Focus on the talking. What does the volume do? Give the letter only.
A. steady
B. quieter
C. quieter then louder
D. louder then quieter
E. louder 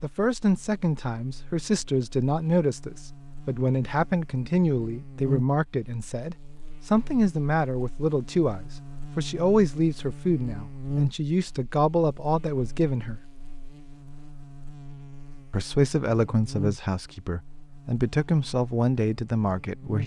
A.